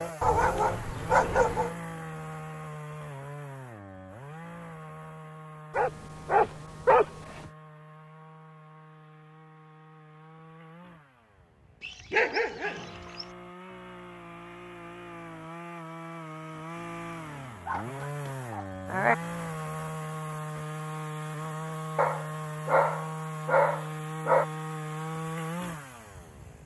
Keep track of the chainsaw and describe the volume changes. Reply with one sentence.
The volume of the chainsaw goes down, then up.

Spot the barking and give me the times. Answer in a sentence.
You can hear the barking from 0.2 to 1.8 s, from 5.7 to 7.5 s, from 11.8 to 13.2 s, from 17.6 to 19.1 s and from 21.9 to 24.4 s.